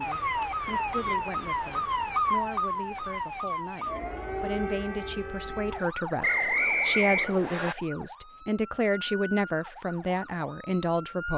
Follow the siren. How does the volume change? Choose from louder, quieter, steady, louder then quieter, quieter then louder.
quieter.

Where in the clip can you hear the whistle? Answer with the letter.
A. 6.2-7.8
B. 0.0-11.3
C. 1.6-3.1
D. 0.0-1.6
A.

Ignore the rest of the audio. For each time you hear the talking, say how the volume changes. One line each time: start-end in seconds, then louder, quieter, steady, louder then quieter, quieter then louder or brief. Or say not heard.
0.0-11.3 louder.